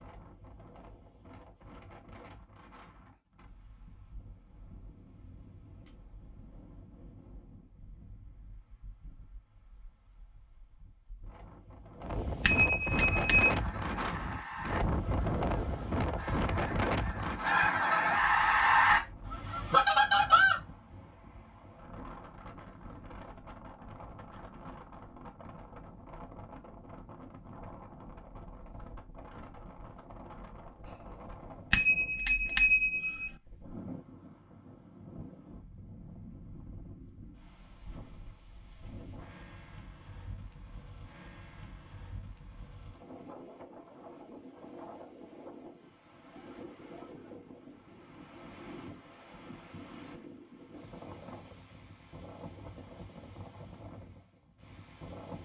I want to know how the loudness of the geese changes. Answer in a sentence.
The volume of the geese goes down, then up.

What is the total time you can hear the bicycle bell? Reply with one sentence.
The bicycle bell can be heard for 3 seconds in total.